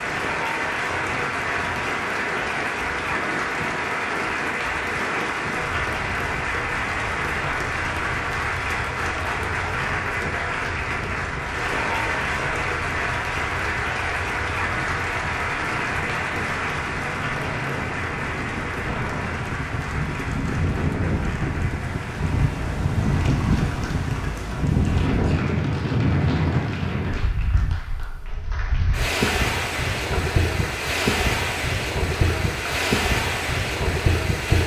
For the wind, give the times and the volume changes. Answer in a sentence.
The wind can be heard from 0.0 to 34.6 s, getting louder.